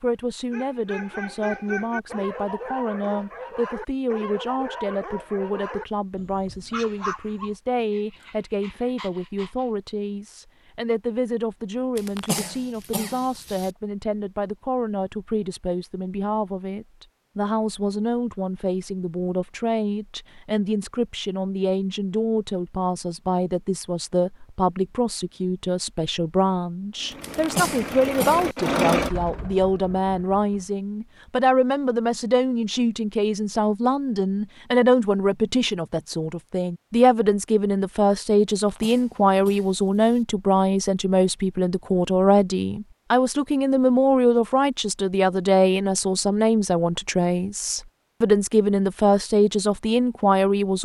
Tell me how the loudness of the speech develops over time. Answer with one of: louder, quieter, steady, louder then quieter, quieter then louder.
louder.